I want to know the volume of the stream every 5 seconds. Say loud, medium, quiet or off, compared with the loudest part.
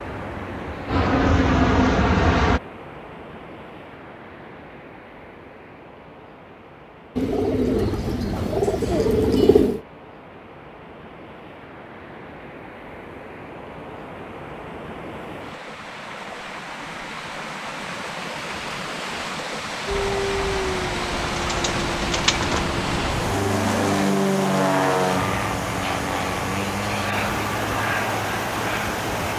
medium, quiet, medium, loud, loud, loud.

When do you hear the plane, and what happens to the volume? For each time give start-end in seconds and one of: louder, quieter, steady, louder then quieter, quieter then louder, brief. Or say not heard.
0.0-2.6 brief
19.9-29.3 louder then quieter.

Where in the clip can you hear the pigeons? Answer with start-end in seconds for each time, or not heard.
7.2-9.8, 21.2-22.6.